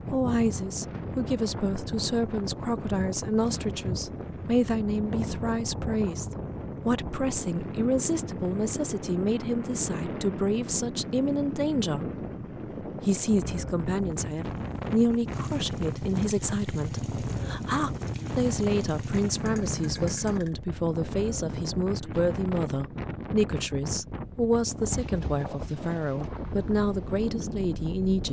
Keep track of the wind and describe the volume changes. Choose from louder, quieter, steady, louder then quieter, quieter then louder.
steady.